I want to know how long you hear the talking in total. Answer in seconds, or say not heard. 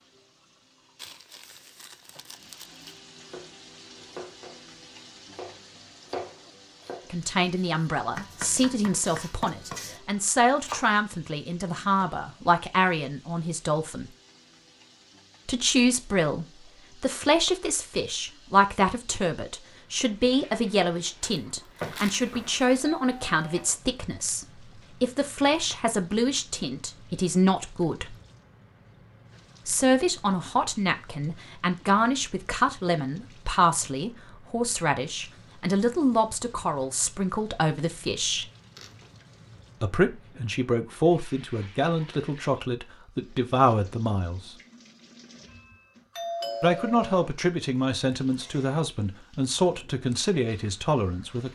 38 s.